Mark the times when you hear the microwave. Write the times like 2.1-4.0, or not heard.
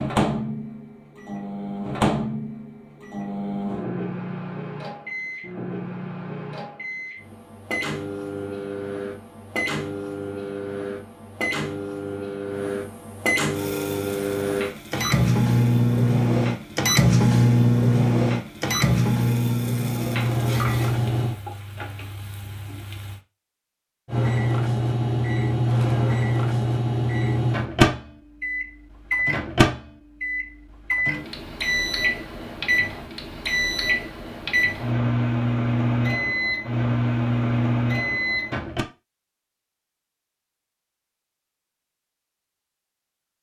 0.0-21.4, 24.1-38.9.